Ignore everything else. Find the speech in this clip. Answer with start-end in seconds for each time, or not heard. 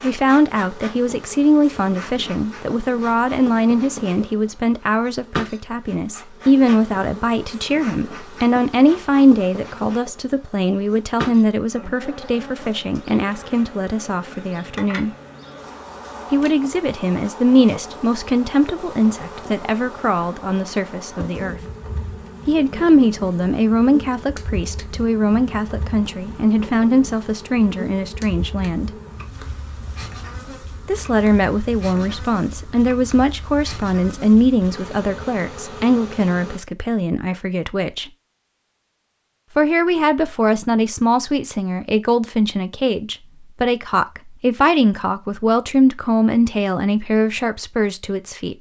0.0-15.1, 16.3-21.6, 22.4-28.9, 30.9-38.1, 39.5-48.5.